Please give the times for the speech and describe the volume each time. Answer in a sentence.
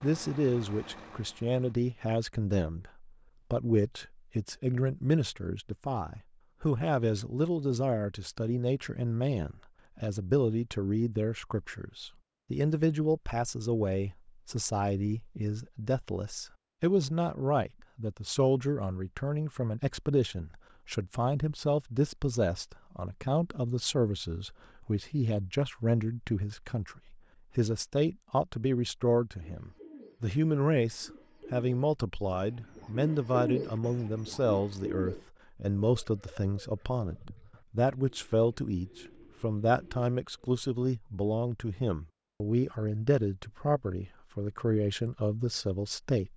You can hear the speech from 0.0 to 46.3 s, at a steady volume.